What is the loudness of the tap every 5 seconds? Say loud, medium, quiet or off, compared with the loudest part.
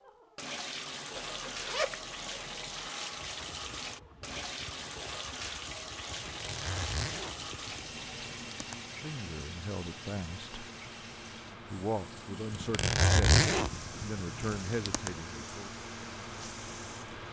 loud, loud, medium, medium.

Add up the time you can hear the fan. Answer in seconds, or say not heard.
14 s.